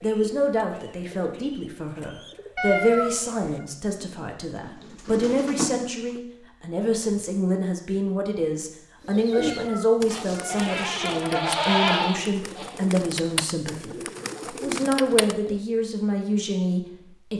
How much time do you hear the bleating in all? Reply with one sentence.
The bleating can be heard for 3 seconds in total.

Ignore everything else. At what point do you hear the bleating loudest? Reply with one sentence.
The loudest moment of the bleating is at 12 seconds.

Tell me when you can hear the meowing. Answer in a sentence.
You can hear the meowing from 2.5 to 3.6 s and from 9.3 to 10.7 s.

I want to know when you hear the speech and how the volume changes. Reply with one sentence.
You can hear the speech from 0.0 to 17.3 s, at a steady volume.